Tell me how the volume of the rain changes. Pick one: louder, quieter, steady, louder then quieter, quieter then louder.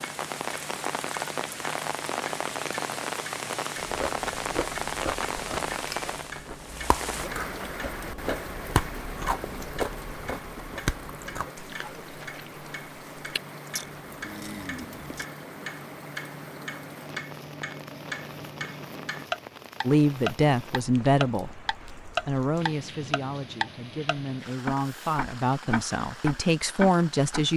quieter.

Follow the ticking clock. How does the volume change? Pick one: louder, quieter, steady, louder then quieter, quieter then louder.
louder.